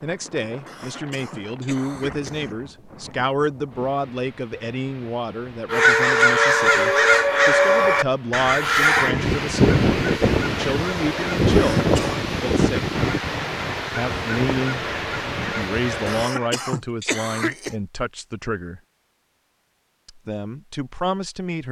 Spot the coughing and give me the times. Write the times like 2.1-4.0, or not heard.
0.7-2.5, 11.5-12.2, 16.1-17.8.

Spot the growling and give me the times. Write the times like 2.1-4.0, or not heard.
not heard.